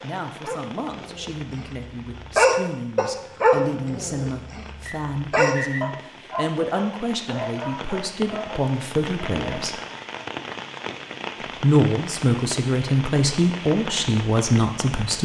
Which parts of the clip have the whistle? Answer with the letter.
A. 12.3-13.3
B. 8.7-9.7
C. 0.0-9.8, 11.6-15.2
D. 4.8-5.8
D.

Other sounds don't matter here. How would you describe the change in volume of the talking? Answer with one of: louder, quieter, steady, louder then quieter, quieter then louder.
louder.